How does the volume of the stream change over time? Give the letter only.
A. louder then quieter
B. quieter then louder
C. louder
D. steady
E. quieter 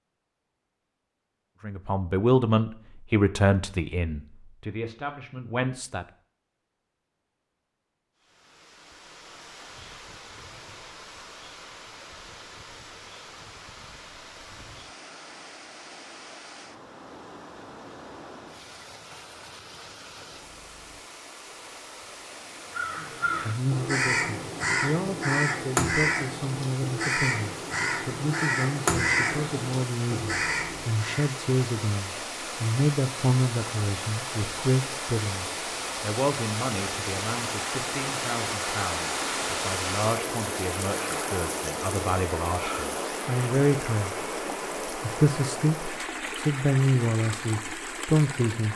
C.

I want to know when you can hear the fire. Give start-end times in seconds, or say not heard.
not heard.